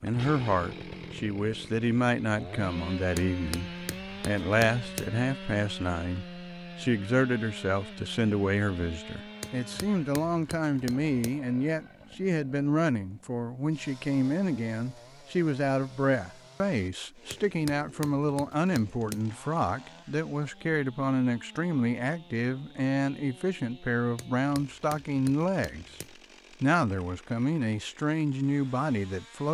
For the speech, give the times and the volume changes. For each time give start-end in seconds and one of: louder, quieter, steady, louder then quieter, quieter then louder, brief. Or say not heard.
0.0-25.9 steady
26.6-29.4 brief.